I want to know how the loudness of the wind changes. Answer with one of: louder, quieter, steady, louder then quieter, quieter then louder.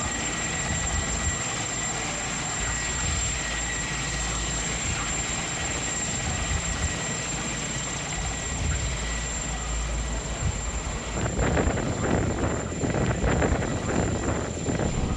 louder.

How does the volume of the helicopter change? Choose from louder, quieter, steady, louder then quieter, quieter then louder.
quieter.